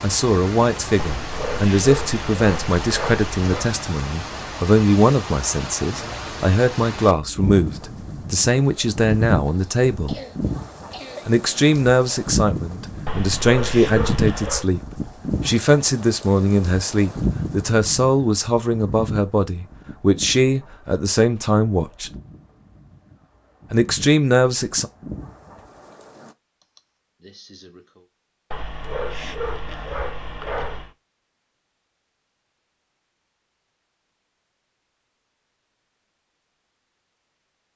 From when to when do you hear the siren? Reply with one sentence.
The siren can't be heard in this clip.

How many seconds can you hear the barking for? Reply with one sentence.
You can hear the barking for 7 seconds altogether.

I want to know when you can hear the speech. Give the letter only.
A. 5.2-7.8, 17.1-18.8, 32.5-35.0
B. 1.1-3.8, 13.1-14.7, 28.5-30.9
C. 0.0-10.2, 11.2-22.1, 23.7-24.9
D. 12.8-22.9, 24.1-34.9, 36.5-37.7
C.